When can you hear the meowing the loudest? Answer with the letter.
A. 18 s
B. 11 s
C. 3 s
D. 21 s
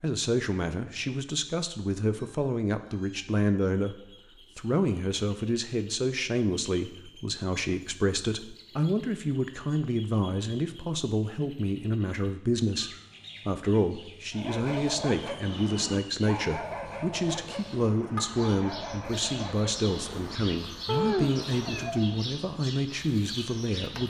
D.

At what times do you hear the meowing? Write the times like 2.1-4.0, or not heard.
2.1-3.3, 20.9-21.9.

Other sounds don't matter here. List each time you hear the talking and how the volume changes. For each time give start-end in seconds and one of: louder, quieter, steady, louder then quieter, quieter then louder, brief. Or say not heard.
0.0-24.0 steady.